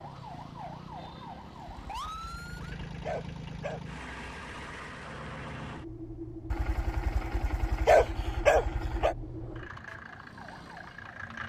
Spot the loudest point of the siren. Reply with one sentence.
The loudest moment of the siren is at 2 seconds.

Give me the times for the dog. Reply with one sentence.
The dog can be heard from 1.9 to 3.9 s and from 6.5 to 9.2 s.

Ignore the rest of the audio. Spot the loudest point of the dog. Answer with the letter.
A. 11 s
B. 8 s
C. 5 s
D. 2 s
B.